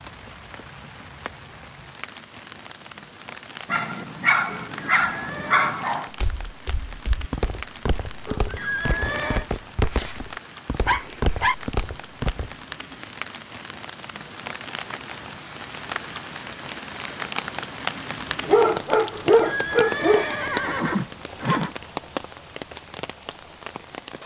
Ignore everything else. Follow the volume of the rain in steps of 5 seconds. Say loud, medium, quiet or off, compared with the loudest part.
medium, medium, medium, loud, loud.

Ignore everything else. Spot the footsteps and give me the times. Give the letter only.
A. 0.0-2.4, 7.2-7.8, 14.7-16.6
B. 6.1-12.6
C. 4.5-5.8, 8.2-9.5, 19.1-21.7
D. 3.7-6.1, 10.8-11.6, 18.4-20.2
B.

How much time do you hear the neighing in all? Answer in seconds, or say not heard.
5 s.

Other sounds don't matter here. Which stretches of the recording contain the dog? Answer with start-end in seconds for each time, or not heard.
3.7-6.1, 10.8-11.6, 18.4-20.2.